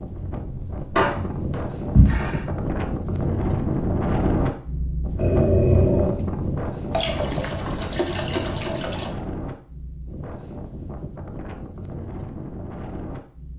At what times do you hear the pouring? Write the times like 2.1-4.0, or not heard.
0.9-2.4, 6.9-9.1.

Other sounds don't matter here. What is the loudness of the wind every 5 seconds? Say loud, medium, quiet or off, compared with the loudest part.
loud, loud, medium.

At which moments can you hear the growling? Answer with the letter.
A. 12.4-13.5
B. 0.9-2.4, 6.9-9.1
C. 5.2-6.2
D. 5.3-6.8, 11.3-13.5
C.